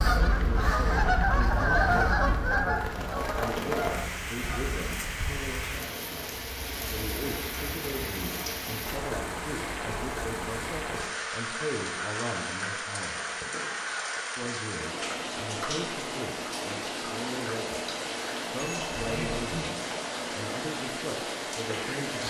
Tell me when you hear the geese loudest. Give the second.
2 s.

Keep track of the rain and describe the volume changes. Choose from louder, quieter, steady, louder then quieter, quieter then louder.
steady.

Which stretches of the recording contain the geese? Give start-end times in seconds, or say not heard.
0.0-5.0.